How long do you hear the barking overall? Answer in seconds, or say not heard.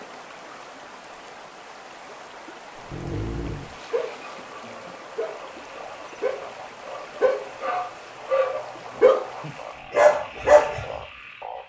8 s.